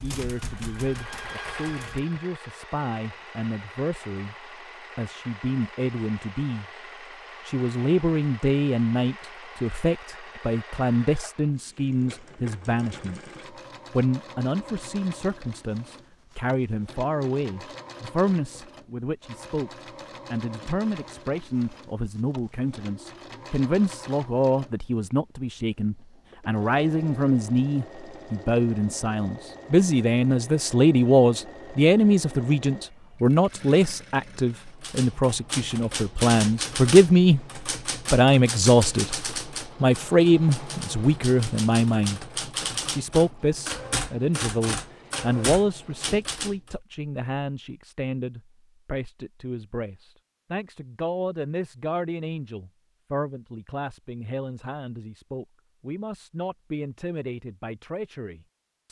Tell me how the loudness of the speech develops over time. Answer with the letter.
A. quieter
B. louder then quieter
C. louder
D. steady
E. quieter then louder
B.